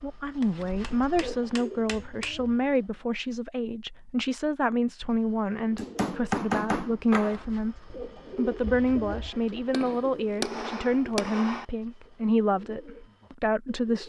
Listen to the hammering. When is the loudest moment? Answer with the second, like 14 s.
6 s.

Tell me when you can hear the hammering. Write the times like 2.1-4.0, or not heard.
0.4-2.3, 5.5-7.5, 9.7-11.7.